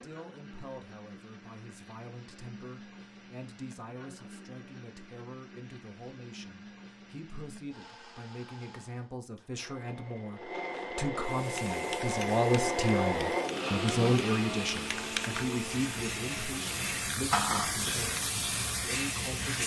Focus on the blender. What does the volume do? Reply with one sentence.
The loudness of the blender goes up.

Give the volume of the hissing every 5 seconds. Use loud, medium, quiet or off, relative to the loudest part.
off, off, medium, loud.